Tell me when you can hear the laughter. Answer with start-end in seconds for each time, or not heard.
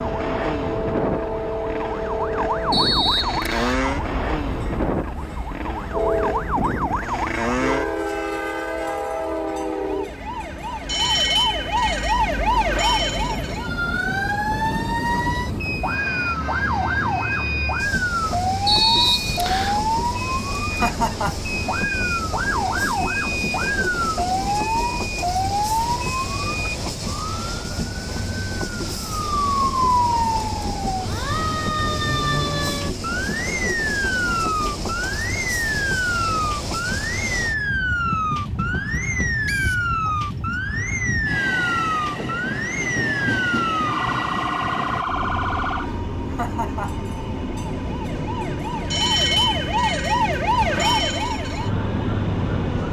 20.7-21.5, 46.2-47.0.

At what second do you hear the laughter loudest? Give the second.
21 s.